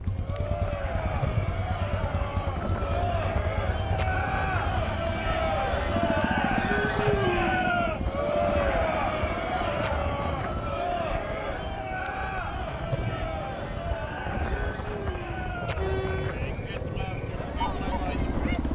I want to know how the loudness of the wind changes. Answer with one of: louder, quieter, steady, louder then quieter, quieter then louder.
steady.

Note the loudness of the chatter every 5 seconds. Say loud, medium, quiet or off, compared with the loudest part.
medium, loud, medium, medium.